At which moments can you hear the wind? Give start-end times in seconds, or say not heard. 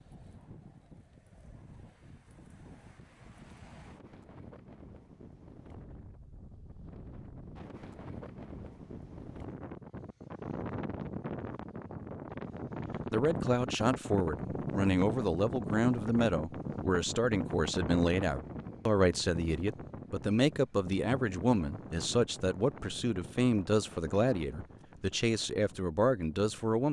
0.0-26.8.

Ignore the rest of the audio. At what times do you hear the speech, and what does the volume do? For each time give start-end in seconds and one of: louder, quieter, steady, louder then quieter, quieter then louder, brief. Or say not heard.
13.1-26.8 steady.